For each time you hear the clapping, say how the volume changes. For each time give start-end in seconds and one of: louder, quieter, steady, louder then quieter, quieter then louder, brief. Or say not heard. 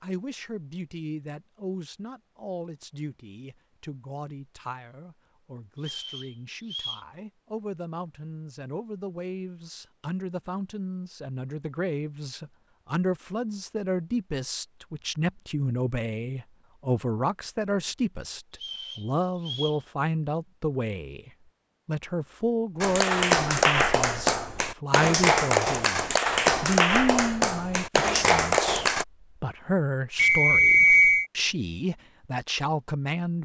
22.8-29.1 steady.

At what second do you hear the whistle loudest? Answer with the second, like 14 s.
31 s.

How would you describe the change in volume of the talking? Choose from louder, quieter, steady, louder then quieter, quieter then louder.
louder.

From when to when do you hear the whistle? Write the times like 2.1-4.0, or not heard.
5.8-7.0, 18.6-19.8, 30.1-31.2.